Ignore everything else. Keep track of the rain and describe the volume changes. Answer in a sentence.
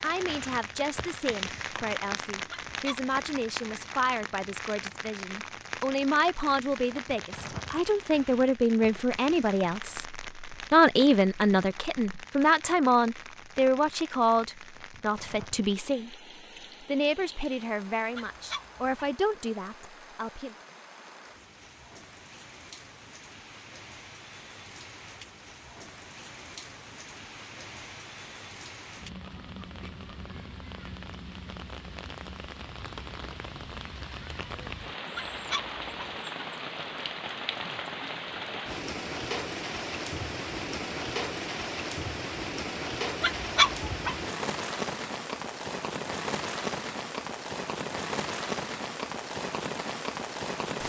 The loudness of the rain goes down, then up.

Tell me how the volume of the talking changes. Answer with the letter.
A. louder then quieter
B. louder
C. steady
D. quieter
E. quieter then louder
A.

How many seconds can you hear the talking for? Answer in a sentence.
You can hear the talking for 20 seconds altogether.